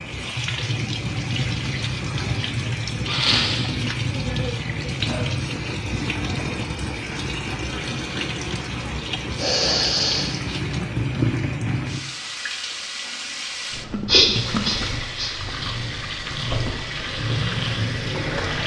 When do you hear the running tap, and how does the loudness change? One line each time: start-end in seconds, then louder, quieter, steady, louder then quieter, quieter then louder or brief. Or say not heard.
0.0-18.6 steady.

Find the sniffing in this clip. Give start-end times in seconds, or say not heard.
3.0-3.7, 9.3-10.3, 14.1-15.3.